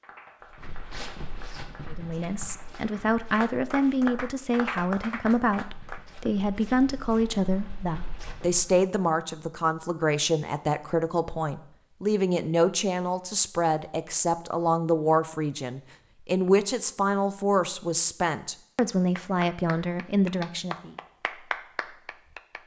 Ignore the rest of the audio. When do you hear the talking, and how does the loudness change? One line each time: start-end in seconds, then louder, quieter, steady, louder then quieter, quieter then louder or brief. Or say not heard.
1.9-20.9 steady.